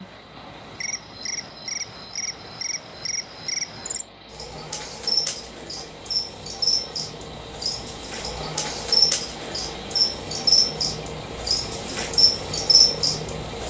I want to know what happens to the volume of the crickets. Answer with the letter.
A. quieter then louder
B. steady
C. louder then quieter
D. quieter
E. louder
E.